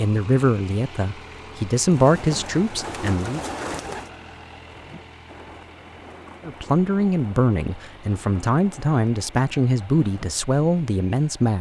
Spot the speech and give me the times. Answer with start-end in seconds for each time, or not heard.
0.0-3.4, 6.5-11.5.